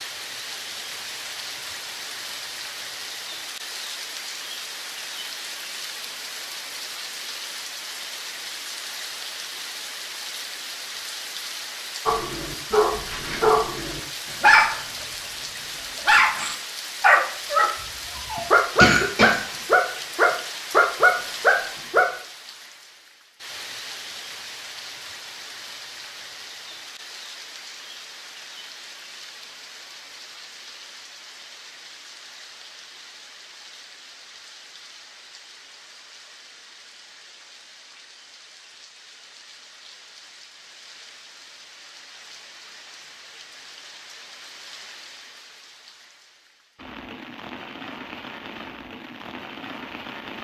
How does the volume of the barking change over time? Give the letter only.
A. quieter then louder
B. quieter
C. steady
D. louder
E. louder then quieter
D.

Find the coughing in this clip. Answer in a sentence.
You can hear the coughing from 17.8 to 19.4 s.